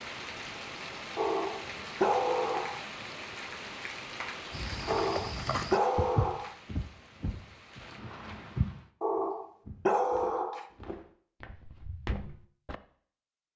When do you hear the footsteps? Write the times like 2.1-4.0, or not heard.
4.5-12.8.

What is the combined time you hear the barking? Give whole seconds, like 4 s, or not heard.
5 s.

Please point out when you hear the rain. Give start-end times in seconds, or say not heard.
0.0-8.9.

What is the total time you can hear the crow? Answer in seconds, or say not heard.
not heard.